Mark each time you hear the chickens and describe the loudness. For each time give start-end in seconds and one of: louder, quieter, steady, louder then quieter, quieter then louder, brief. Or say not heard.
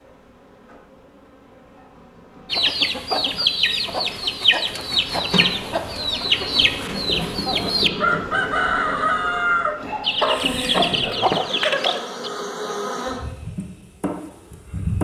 2.5-12.3 steady.